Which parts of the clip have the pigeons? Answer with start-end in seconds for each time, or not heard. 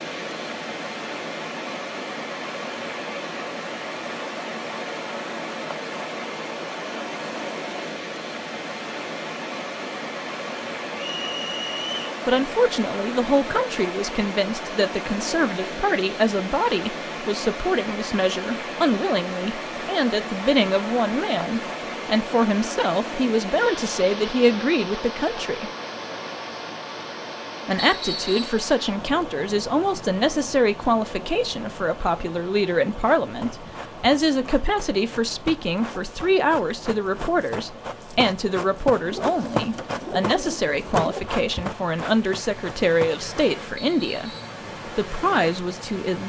39.0-41.2.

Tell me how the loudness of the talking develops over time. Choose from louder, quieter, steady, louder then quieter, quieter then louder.
steady.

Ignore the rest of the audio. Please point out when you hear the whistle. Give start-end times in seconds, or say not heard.
10.9-12.1, 27.8-28.6, 43.8-44.5.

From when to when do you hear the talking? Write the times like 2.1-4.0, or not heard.
12.2-25.7, 27.6-46.2.